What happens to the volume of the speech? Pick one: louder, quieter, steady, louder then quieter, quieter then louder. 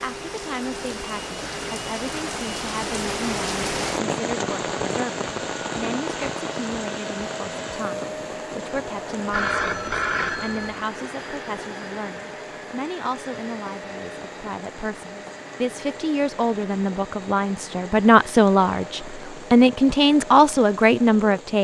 louder.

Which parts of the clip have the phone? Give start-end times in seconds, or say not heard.
9.3-10.8.